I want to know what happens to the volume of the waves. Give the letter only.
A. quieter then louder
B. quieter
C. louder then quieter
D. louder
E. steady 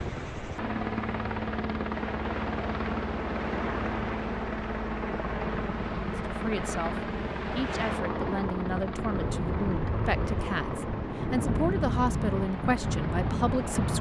D.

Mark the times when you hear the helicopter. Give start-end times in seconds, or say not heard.
0.0-13.9.